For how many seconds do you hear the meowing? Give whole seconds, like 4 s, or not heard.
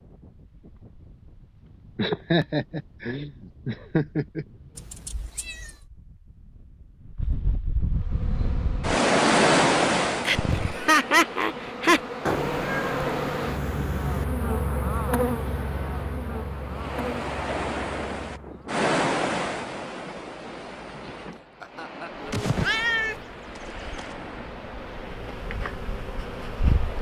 5 s.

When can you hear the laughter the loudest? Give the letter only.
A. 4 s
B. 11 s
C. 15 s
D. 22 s
B.